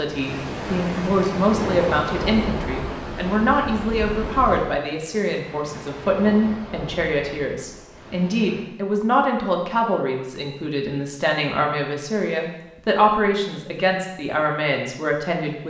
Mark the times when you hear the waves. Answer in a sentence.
The waves can be heard from 0.0 to 8.8 s.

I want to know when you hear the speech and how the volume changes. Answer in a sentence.
You can hear the speech from 0.0 to 15.6 s, at a steady volume.